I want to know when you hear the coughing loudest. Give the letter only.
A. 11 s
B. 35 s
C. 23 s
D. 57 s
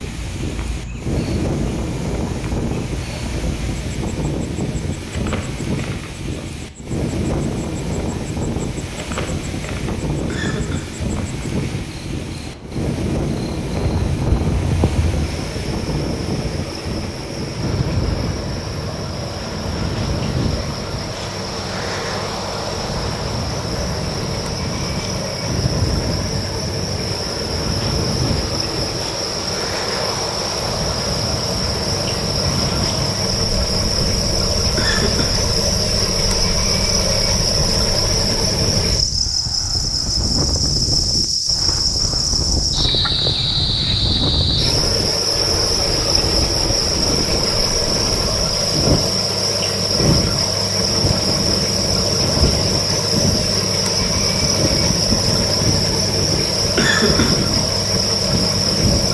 D.